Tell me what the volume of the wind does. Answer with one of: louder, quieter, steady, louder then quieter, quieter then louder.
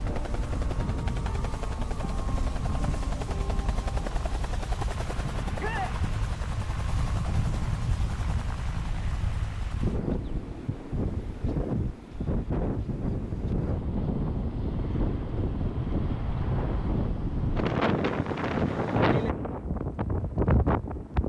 louder.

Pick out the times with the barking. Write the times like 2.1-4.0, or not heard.
not heard.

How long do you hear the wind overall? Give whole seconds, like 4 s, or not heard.
21 s.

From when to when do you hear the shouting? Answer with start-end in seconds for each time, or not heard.
5.5-6.0.